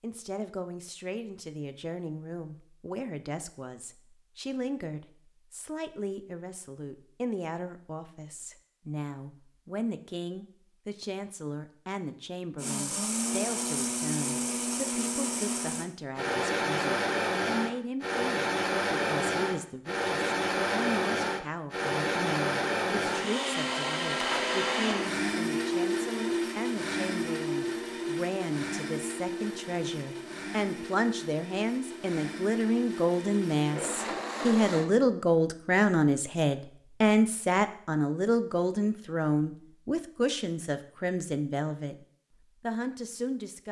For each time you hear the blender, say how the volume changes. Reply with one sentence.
You can hear the blender from 12.6 to 34.9 s, getting quieter.